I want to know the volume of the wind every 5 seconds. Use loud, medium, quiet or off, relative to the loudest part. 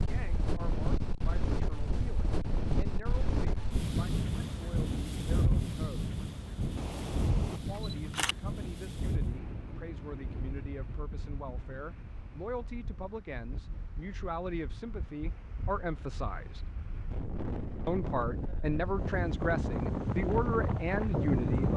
medium, medium, quiet, medium, loud.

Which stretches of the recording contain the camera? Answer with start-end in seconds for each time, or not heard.
6.8-8.3.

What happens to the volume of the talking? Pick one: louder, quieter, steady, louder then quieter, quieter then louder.
louder.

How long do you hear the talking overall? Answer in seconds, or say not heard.
19 s.